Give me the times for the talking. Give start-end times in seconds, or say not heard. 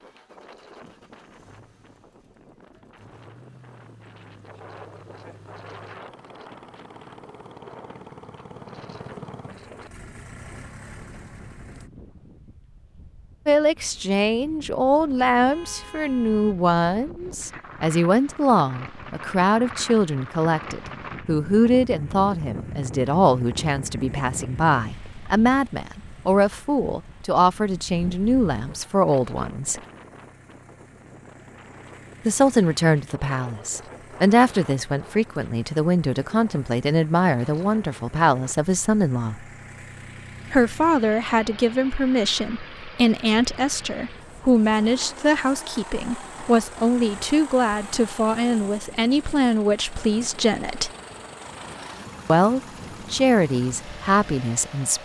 13.4-29.8, 32.2-39.4, 40.5-50.9, 52.2-55.0.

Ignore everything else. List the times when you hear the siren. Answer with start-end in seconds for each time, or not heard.
not heard.